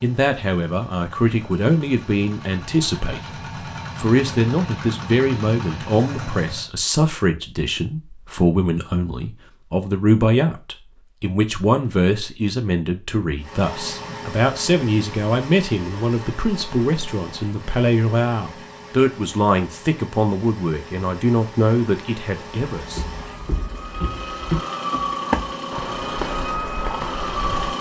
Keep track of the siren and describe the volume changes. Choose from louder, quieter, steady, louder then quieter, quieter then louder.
louder then quieter.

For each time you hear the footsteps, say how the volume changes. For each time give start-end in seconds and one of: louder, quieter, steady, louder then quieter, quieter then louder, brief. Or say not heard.
22.8-27.7 louder then quieter.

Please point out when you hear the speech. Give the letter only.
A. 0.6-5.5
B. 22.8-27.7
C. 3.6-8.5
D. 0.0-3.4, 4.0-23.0
D.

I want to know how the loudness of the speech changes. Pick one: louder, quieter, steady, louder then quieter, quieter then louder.
steady.